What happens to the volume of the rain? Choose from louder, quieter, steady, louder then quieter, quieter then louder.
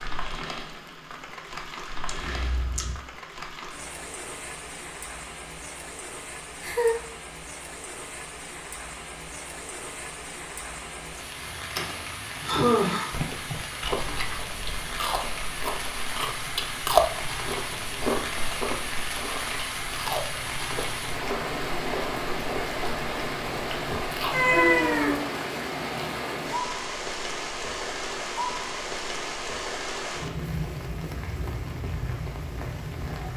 louder.